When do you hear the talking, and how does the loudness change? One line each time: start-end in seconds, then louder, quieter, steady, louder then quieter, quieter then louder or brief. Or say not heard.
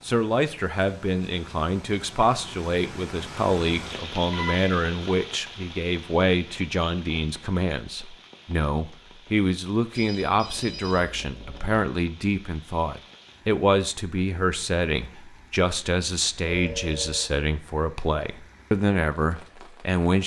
0.0-20.2 steady.